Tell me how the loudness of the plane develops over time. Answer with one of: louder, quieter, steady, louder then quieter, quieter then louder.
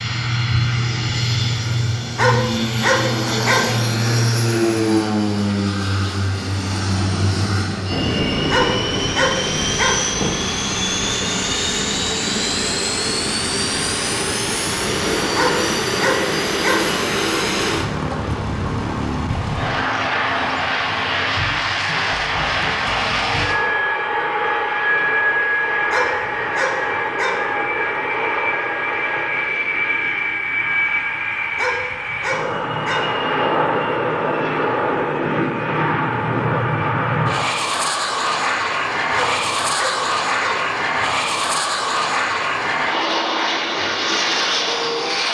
steady.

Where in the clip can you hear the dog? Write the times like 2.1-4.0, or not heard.
2.1-3.6, 8.5-10.0, 15.3-16.9, 25.9-27.4, 31.6-33.0, 39.1-40.6.